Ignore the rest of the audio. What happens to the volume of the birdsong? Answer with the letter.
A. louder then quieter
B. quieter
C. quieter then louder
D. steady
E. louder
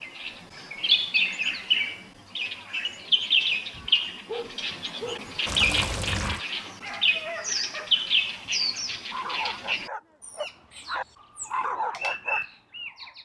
B.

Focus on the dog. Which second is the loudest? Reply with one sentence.
The loudest moment of the dog is at 12 seconds.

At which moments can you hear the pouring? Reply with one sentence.
You can hear the pouring from 5.5 to 6.4 s.